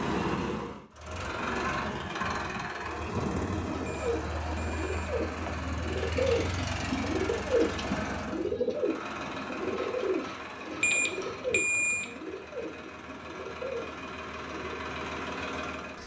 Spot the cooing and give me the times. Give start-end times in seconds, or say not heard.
3.6-14.8.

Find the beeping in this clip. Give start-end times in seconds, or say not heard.
3.9-5.6, 10.8-12.1.